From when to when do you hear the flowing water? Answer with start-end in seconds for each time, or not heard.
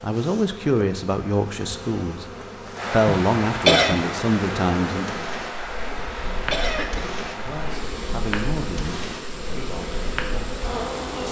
2.7-11.2.